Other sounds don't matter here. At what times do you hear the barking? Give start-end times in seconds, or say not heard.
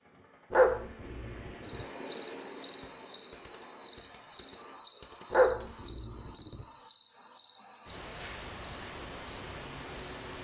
0.5-1.9, 5.3-6.7.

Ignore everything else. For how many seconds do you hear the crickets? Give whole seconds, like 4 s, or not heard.
9 s.